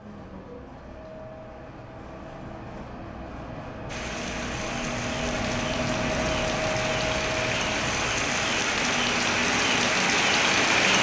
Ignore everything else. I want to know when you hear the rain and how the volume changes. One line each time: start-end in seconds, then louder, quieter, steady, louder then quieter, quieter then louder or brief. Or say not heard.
3.9-10.9 louder.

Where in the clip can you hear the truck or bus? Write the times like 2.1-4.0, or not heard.
0.0-10.7.